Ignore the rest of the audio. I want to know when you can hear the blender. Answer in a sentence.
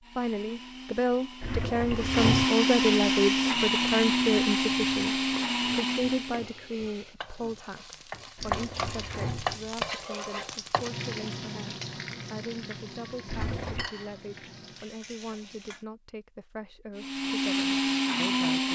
The blender can be heard from 0.0 to 6.5 s and from 16.9 to 18.7 s.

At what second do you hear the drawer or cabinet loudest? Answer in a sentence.
The loudest moment of the drawer or cabinet is at 2 seconds.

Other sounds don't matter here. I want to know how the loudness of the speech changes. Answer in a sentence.
The loudness of the speech goes down.